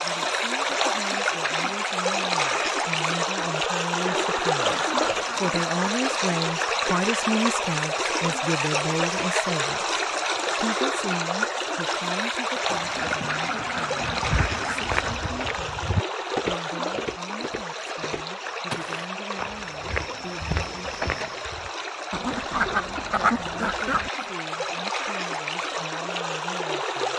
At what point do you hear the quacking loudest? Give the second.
23 s.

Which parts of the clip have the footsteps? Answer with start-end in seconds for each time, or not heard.
14.1-21.7.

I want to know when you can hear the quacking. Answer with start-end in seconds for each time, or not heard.
3.9-6.0, 12.7-15.2, 22.1-24.1.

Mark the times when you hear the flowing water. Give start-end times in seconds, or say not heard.
0.0-27.1.